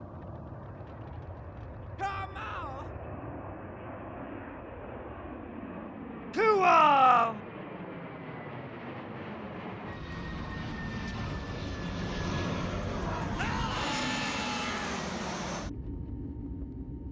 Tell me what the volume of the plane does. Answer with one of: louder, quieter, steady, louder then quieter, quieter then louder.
louder.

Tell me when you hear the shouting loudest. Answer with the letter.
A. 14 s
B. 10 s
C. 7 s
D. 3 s
C.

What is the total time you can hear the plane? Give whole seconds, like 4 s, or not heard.
17 s.